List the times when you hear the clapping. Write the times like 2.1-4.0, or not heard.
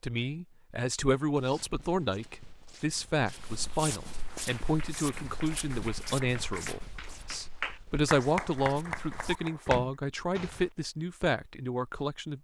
4.3-9.9.